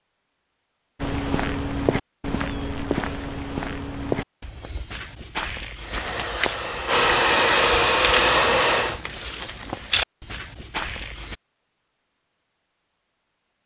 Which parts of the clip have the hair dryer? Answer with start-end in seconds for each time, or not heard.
5.8-9.0.